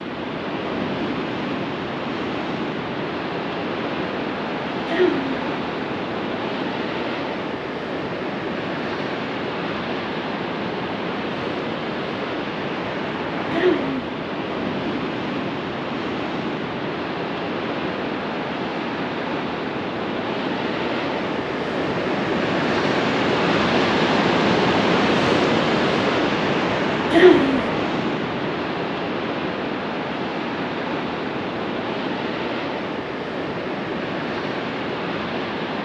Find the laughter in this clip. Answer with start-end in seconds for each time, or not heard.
4.8-5.5, 13.5-14.1, 27.1-27.6.